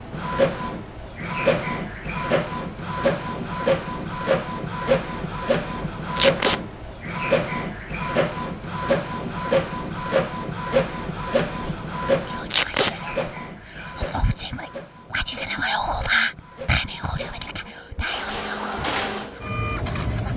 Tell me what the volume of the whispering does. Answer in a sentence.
The loudness of the whispering goes up, then down.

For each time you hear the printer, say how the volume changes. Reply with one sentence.
You can hear the printer from 0.0 to 20.3 s, getting quieter.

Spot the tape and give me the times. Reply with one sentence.
You can hear the tape from 6.2 to 6.6 s and from 12.5 to 12.9 s.